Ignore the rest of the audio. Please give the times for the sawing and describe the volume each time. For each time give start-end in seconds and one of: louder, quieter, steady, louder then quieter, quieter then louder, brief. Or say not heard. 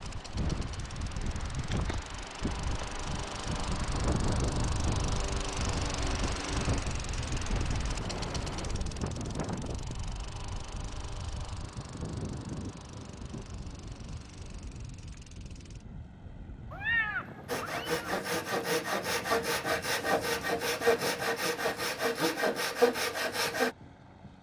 17.4-23.8 steady.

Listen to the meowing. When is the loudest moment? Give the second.
17 s.